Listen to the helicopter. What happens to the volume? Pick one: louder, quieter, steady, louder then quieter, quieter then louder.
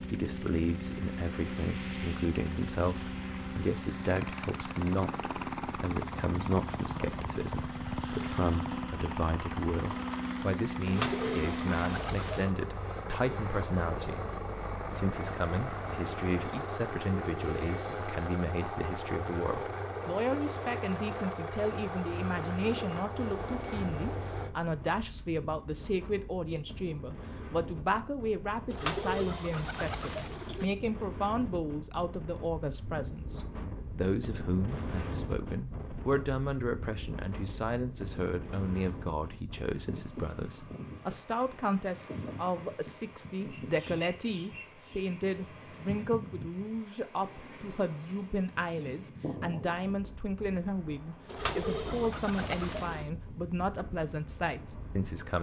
steady.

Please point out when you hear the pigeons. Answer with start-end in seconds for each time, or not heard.
10.8-12.5, 28.7-30.6, 51.2-53.0.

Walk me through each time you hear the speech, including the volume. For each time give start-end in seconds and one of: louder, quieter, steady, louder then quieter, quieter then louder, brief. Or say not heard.
0.0-55.3 steady.